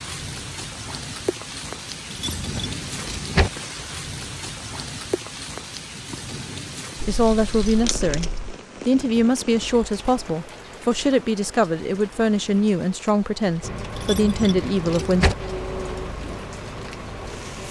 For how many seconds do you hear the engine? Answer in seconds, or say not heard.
4 s.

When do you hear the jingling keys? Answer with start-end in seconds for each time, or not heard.
2.1-3.5, 7.0-8.6, 13.9-15.3.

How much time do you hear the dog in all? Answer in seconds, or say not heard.
not heard.